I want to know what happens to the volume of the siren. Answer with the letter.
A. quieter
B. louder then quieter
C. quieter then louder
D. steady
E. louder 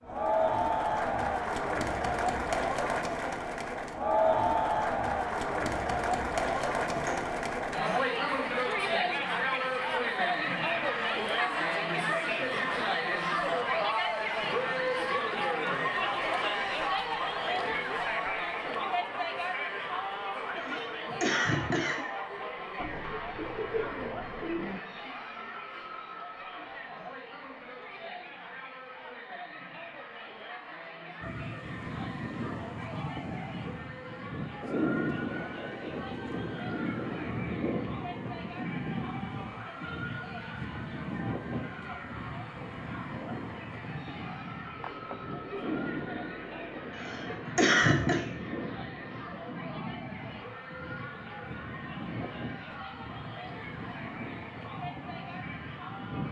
A.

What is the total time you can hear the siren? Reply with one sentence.
The siren can be heard for 25 seconds in total.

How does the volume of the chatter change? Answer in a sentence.
The loudness of the chatter goes down.